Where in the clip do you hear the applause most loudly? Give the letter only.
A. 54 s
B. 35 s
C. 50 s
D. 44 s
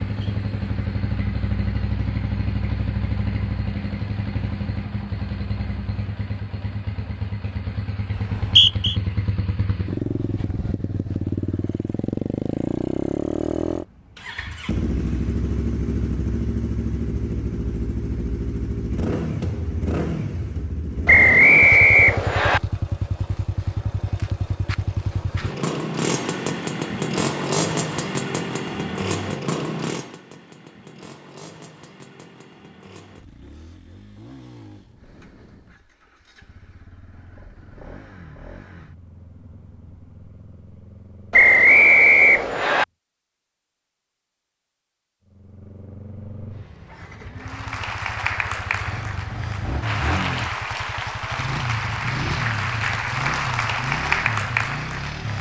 A.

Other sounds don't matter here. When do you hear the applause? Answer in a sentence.
You can hear the applause from 47.4 to 55.3 s.